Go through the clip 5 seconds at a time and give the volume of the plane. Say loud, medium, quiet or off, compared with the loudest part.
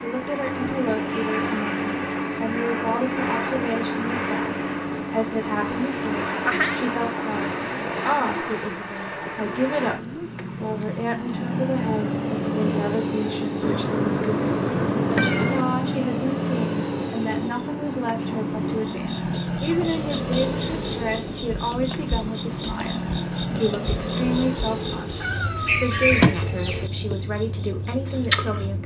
loud, loud, loud, loud, loud, medium.